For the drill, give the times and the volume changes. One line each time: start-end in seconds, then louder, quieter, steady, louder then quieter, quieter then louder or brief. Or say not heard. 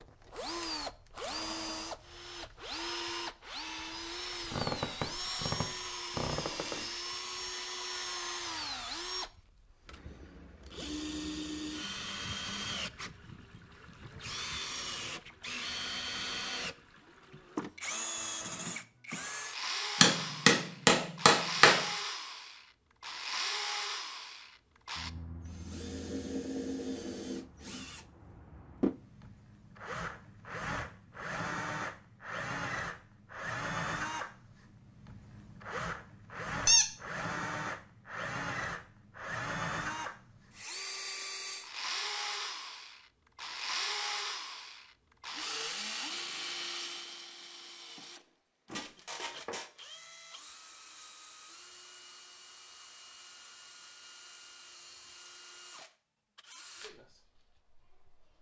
0.0-58.3 quieter.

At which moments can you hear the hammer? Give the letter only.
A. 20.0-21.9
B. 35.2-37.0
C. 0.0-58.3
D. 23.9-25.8
A.